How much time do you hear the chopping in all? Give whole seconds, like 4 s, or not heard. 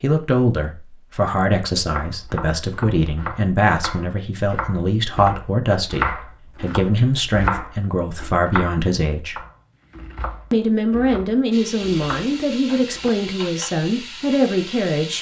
11 s.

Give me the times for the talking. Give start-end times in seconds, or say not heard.
0.0-9.4, 10.5-15.1.